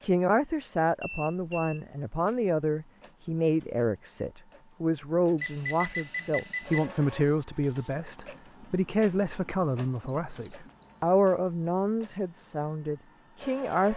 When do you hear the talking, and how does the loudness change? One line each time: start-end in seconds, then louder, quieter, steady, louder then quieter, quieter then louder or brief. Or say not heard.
0.0-13.9 steady.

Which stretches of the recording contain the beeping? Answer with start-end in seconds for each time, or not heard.
1.0-1.8, 5.4-6.9, 10.1-11.2.